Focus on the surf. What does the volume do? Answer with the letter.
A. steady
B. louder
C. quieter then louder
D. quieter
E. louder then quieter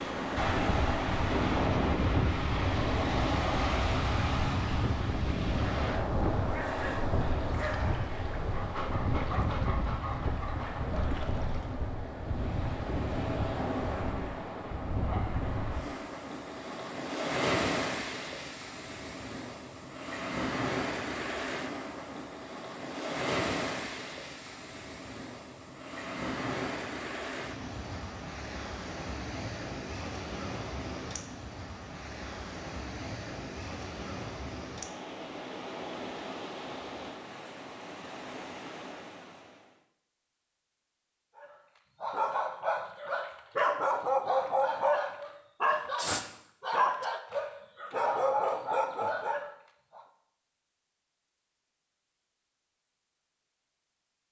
D.